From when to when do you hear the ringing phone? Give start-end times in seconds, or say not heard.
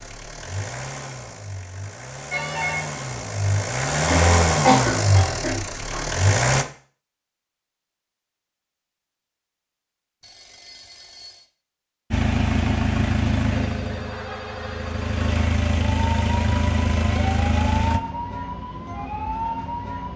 2.3-2.9, 10.2-11.4, 13.5-15.4.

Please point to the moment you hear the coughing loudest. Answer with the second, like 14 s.
5 s.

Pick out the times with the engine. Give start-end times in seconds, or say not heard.
0.0-6.7, 12.1-18.0.